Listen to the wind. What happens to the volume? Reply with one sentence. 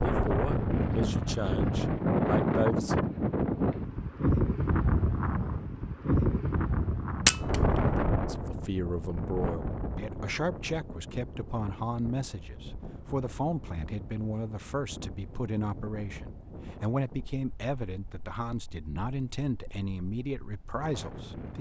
The volume of the wind goes down.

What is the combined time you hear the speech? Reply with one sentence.
You can hear the speech for 16 seconds altogether.